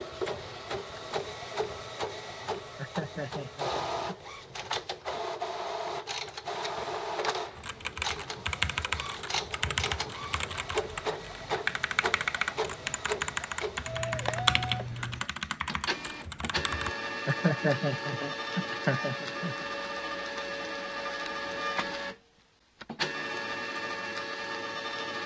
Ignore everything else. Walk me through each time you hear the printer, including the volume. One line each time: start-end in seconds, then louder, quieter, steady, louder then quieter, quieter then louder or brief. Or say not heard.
0.0-25.2 steady.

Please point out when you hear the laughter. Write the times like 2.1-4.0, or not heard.
2.8-4.2, 17.2-19.6.